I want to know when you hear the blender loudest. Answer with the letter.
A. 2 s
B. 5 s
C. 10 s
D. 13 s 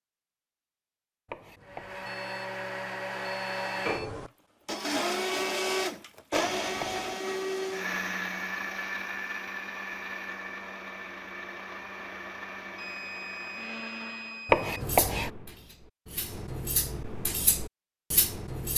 B.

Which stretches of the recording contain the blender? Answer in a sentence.
The blender can be heard from 1.6 to 14.6 s.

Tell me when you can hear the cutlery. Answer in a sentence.
The cutlery can be heard from 14.8 to 18.7 s.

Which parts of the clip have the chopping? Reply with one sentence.
The chopping can be heard from 1.2 to 2.1 s, from 6.3 to 7.2 s and from 14.4 to 15.3 s.